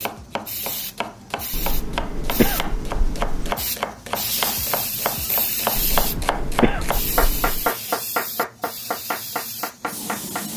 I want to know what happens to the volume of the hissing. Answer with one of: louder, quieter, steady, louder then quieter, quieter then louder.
louder then quieter.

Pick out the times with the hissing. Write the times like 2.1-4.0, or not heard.
0.0-10.5.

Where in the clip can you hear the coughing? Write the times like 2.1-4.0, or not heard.
1.5-3.5, 5.8-7.7.